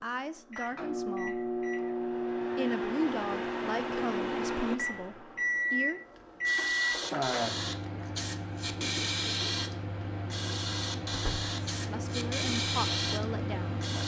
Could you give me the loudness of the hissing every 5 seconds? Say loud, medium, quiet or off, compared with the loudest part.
off, loud, loud.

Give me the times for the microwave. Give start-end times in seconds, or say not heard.
0.0-14.0.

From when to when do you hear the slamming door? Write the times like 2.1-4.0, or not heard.
11.1-11.5.